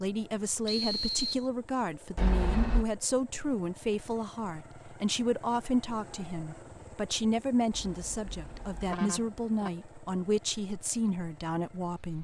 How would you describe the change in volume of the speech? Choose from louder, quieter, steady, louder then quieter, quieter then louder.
steady.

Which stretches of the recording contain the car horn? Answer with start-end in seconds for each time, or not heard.
2.1-2.9, 7.7-9.7.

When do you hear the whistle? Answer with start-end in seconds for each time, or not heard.
0.7-1.4.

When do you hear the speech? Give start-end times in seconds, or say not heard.
0.0-12.1.